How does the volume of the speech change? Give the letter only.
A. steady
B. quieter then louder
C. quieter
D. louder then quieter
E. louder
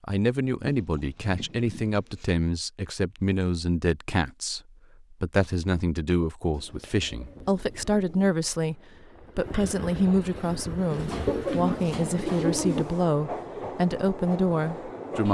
A.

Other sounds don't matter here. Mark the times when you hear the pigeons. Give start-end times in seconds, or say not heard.
0.6-2.3, 6.5-8.3, 10.9-12.8.